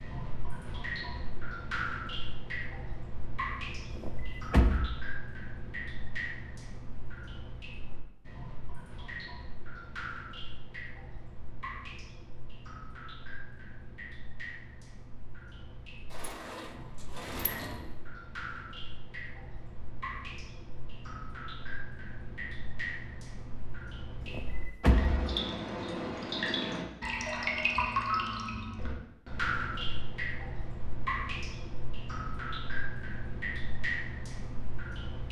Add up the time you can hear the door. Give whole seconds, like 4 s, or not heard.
4 s.